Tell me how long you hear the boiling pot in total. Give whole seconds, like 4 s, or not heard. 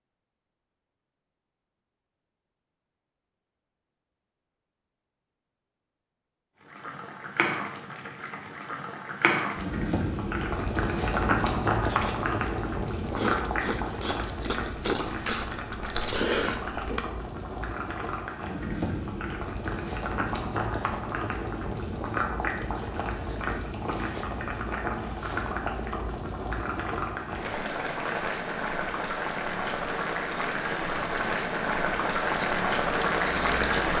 27 s.